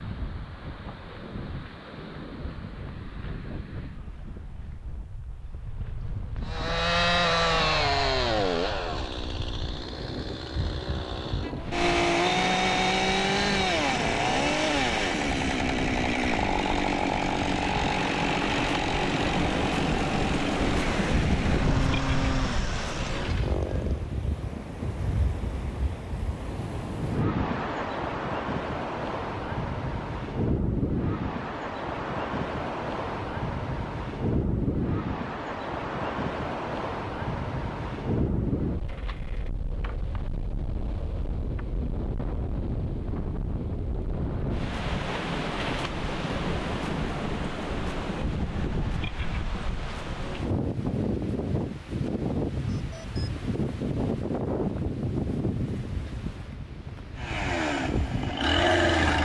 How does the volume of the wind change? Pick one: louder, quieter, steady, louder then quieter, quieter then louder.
louder.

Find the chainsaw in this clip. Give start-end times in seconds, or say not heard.
6.4-24.1, 57.1-59.1.